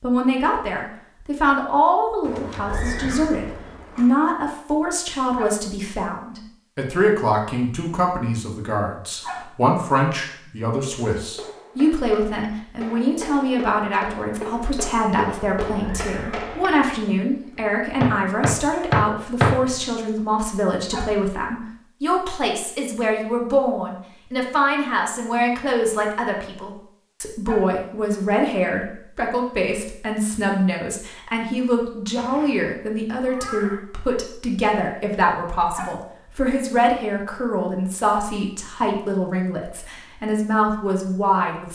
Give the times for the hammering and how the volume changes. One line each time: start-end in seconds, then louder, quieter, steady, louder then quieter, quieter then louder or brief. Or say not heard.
11.2-19.8 louder.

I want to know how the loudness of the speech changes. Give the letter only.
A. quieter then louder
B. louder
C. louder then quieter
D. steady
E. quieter
D.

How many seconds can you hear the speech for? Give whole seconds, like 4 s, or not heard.
42 s.